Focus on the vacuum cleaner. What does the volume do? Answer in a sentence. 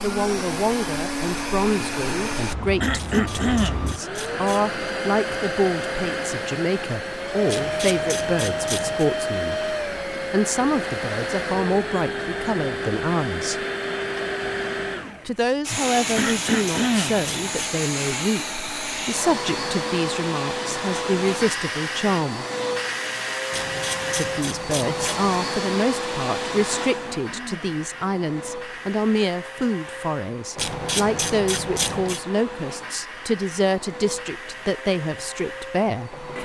The volume of the vacuum cleaner goes down.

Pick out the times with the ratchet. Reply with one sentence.
You can hear the ratchet from 3.0 to 4.8 s, from 7.5 to 9.1 s, from 16.1 to 17.8 s, from 23.5 to 25.4 s and from 30.6 to 32.2 s.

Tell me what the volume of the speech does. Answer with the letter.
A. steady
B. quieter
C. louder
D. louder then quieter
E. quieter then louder
A.